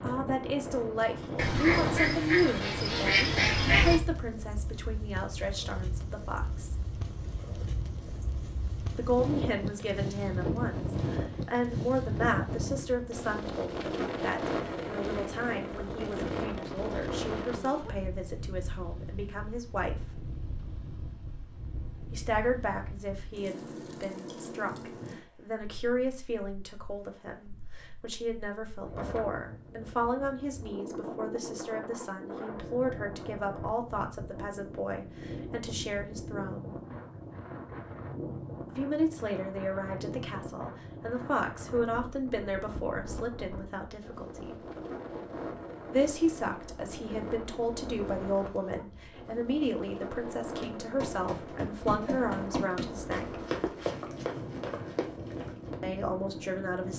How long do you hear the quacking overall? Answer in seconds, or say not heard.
3 s.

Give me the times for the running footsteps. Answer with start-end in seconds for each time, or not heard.
50.6-55.8.